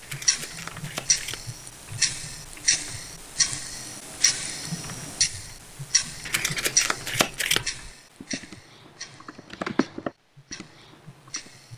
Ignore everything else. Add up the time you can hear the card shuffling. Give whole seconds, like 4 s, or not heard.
3 s.